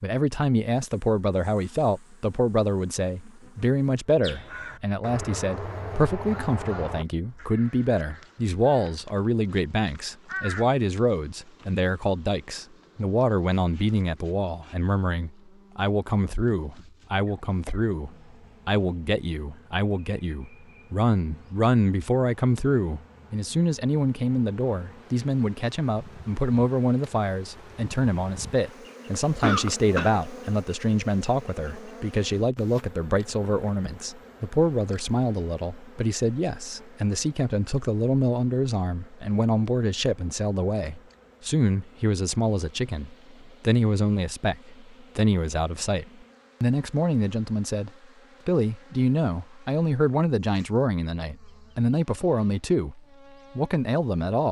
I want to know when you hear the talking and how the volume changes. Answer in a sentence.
You can hear the talking from 0.0 to 54.4 s, at a steady volume.